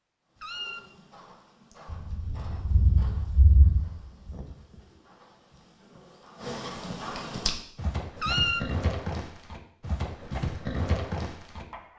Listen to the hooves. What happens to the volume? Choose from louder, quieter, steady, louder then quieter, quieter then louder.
louder.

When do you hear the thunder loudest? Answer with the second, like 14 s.
4 s.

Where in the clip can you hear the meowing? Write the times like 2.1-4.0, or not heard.
0.3-0.8, 8.2-8.6.